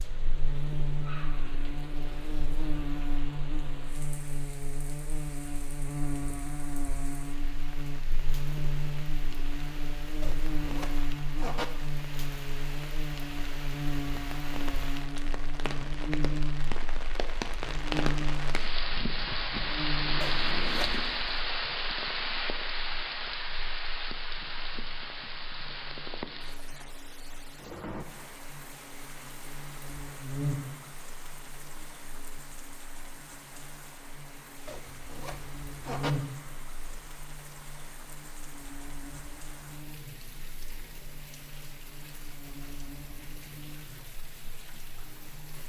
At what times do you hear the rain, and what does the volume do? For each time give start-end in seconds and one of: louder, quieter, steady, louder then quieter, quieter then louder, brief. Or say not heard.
0.0-45.6 louder then quieter.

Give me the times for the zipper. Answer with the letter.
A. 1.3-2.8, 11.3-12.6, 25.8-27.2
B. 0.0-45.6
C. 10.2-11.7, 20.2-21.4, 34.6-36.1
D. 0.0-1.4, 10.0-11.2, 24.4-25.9
C.